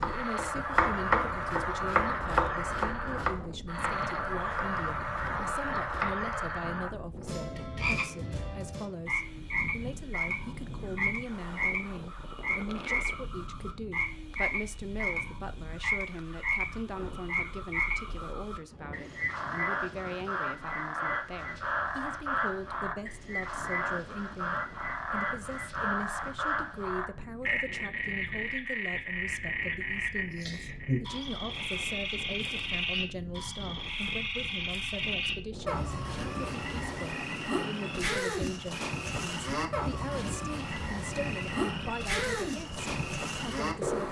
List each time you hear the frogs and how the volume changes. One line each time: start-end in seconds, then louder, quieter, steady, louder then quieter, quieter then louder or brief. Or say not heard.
0.0-44.0 steady.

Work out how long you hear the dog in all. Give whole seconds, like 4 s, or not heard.
not heard.